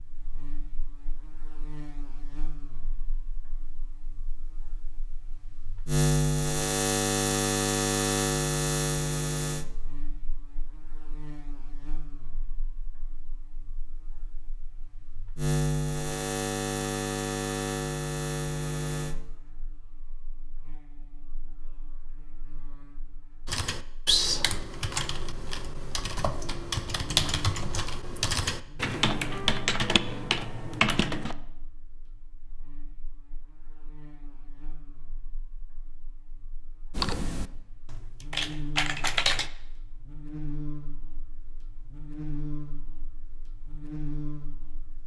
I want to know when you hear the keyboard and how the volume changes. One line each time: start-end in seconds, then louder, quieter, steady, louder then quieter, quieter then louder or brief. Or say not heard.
23.4-31.4 quieter then louder
36.9-39.5 brief.